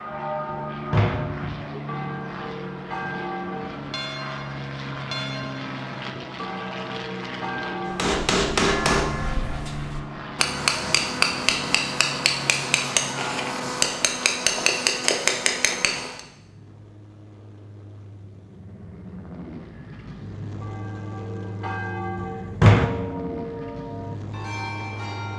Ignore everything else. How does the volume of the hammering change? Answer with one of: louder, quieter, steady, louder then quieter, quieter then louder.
steady.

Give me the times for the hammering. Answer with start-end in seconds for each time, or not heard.
7.8-16.2.